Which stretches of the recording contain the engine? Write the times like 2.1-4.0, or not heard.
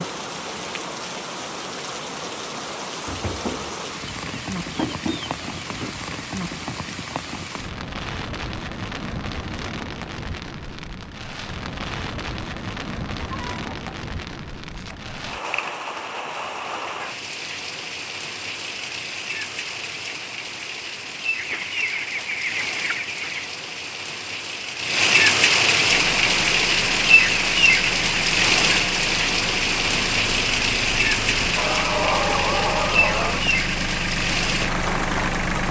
25.9-35.6.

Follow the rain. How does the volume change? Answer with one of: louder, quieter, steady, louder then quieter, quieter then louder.
louder.